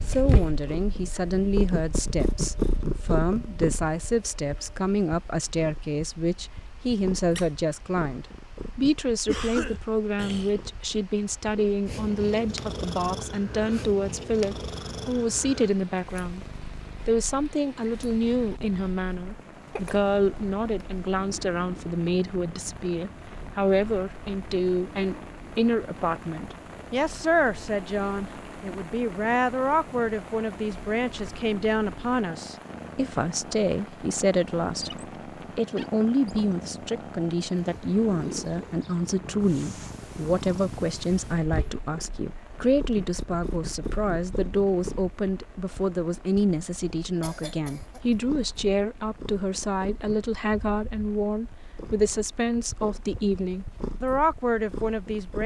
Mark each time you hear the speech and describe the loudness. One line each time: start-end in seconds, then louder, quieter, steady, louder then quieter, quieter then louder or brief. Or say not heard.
0.0-16.4 steady
17.1-55.4 steady.